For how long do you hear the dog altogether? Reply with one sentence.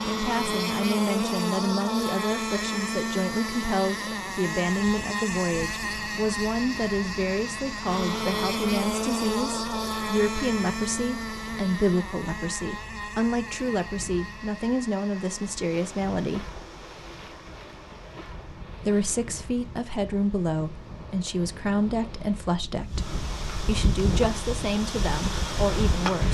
The dog can't be heard in this clip.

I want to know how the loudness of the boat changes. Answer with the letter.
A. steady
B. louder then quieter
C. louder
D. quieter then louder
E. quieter
E.